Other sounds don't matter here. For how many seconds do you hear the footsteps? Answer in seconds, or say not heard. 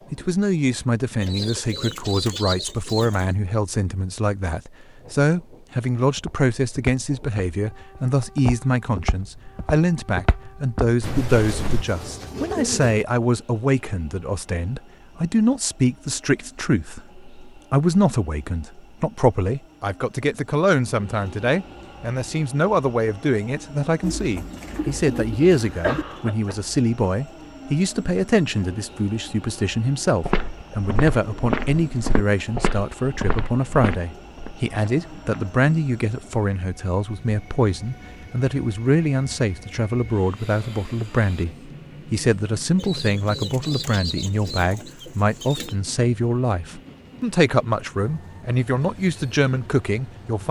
11 s.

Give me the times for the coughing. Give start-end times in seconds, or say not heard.
25.4-26.6.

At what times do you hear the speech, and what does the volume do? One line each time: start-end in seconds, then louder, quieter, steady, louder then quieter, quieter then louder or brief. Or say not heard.
0.1-50.4 steady.